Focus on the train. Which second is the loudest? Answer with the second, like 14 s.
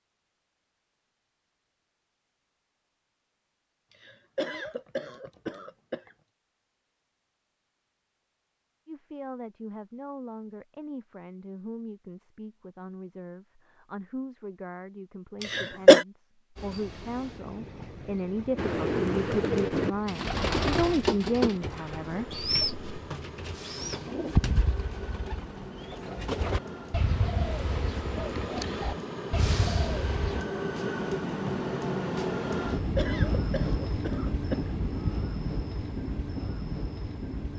33 s.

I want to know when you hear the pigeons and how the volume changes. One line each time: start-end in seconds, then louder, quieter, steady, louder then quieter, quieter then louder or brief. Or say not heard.
18.6-30.4 quieter.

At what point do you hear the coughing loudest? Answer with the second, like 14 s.
16 s.